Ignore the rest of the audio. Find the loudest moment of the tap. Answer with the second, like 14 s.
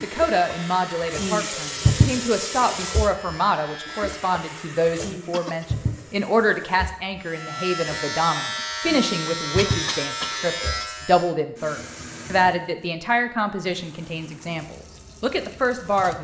2 s.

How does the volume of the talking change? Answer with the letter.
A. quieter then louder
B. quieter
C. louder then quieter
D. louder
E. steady
E.